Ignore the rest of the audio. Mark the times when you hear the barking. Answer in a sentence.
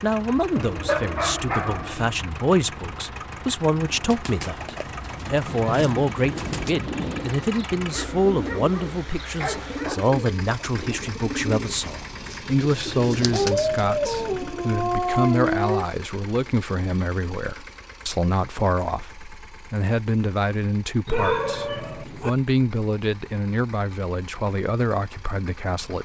The barking can be heard from 0.6 to 2.2 s, from 7.8 to 10.1 s, from 13.3 to 15.8 s and from 21.1 to 22.3 s.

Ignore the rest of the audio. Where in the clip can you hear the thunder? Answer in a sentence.
You can hear the thunder from 5.5 to 7.5 s and from 13.2 to 14.6 s.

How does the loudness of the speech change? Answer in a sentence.
The loudness of the speech stays about the same.